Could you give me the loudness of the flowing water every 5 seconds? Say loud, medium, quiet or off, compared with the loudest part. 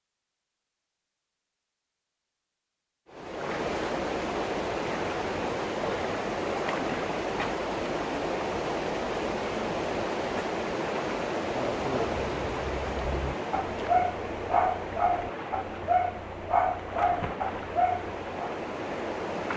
loud, loud, loud, medium.